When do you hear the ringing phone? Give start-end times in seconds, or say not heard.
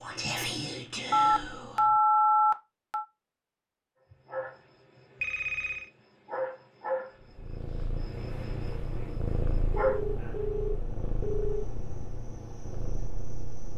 1.1-3.0, 5.2-5.9, 9.8-11.7.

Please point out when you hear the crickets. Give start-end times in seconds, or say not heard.
4.1-13.7.